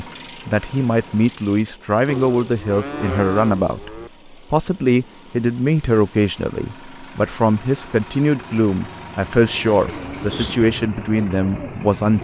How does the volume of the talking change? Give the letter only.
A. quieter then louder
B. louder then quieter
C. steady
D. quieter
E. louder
C.